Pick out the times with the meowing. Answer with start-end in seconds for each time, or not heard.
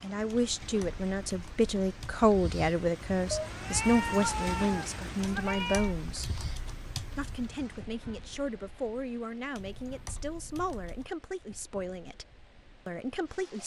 3.3-6.0.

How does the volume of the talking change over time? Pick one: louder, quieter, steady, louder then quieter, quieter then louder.
quieter.